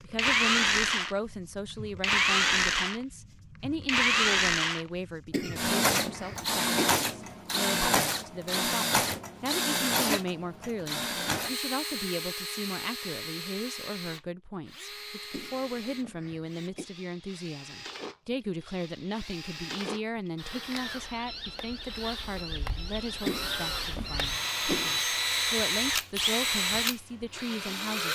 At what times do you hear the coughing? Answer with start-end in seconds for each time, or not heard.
5.3-7.0, 15.3-16.9, 23.2-25.0.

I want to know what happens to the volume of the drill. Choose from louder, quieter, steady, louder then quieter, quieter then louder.
quieter then louder.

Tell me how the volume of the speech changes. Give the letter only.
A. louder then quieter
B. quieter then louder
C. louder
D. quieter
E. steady
E.